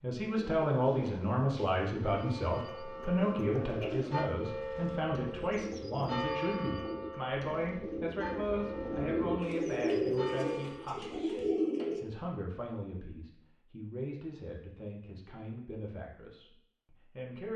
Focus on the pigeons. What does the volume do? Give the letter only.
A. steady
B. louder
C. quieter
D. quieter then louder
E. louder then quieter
B.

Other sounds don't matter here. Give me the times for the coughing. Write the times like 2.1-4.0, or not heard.
not heard.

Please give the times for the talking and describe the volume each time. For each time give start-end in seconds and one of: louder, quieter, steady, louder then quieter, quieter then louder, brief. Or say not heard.
0.0-17.5 quieter.